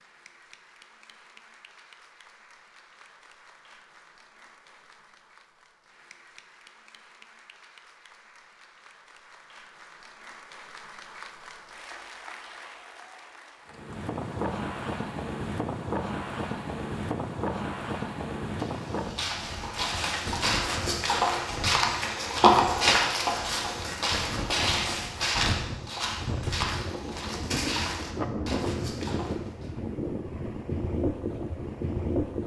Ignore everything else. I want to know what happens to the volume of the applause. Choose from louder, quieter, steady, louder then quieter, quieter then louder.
louder.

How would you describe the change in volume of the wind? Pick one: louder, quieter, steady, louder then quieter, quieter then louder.
quieter then louder.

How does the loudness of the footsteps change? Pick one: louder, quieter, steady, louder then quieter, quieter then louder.
louder then quieter.